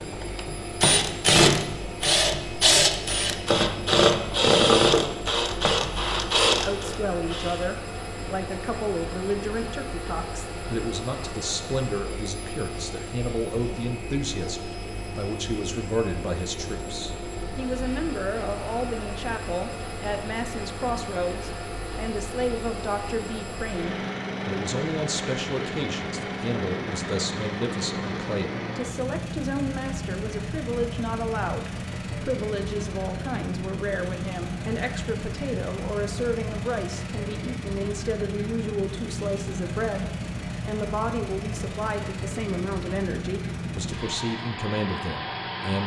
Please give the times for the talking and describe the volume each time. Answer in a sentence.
The talking can be heard from 6.5 to 45.8 s, at a steady volume.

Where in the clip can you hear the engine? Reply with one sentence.
The engine can be heard from 0.0 to 45.8 s.